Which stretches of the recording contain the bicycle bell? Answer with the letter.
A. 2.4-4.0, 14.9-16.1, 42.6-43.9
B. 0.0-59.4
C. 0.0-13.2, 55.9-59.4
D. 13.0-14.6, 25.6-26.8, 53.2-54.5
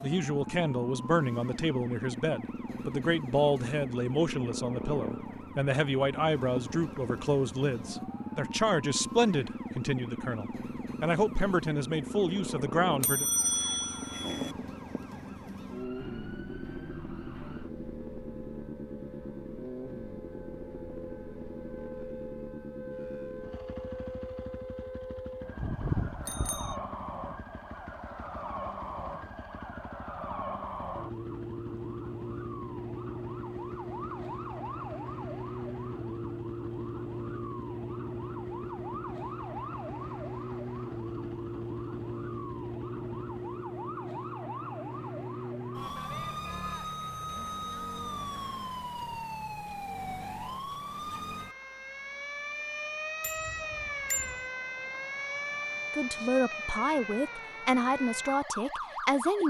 D.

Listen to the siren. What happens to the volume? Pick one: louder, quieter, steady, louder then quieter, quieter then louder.
louder.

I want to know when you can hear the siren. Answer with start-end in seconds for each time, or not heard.
0.0-59.4.